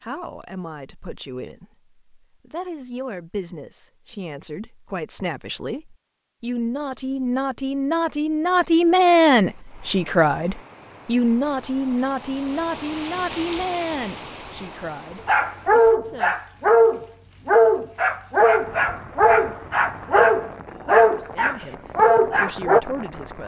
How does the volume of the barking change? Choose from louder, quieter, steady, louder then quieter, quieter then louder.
steady.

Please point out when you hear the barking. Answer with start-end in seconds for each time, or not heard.
15.2-22.8.